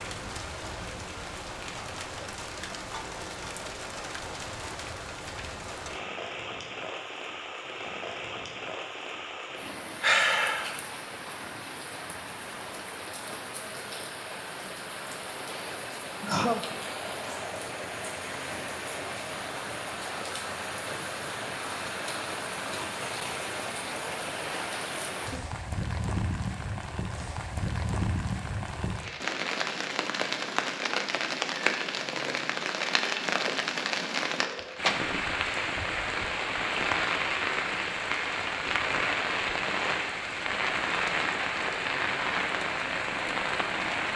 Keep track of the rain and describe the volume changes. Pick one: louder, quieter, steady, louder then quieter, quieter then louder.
louder.